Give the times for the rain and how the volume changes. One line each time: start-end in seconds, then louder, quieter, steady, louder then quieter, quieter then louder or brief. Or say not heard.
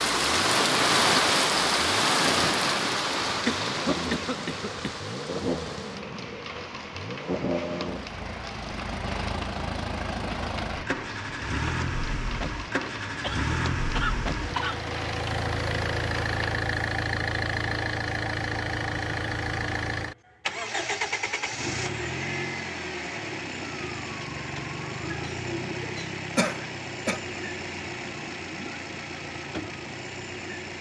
0.0-16.6 quieter.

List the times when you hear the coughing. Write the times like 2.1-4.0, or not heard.
3.2-5.0, 13.2-14.8, 26.4-27.2.